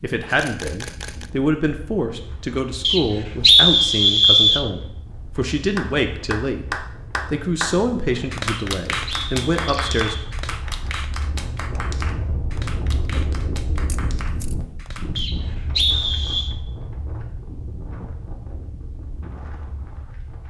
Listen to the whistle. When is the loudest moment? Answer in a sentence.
The volume of the whistle peaks at 4 seconds.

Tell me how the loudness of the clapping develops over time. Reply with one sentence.
The loudness of the clapping goes down.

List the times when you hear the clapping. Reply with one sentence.
The clapping can be heard from 5.8 to 15.2 s.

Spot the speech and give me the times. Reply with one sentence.
You can hear the speech from 0.0 to 6.7 s and from 7.3 to 10.2 s.